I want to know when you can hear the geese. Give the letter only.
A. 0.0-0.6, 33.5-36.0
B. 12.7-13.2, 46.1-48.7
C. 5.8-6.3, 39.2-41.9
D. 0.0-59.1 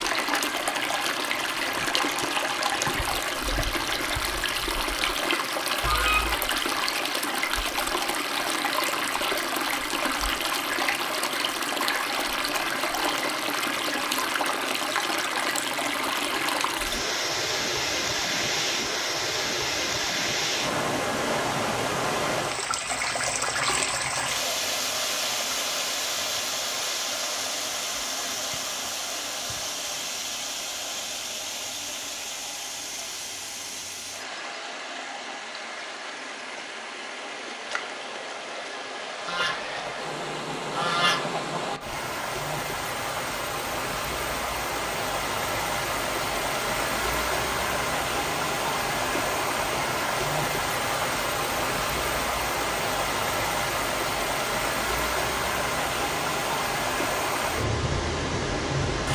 C.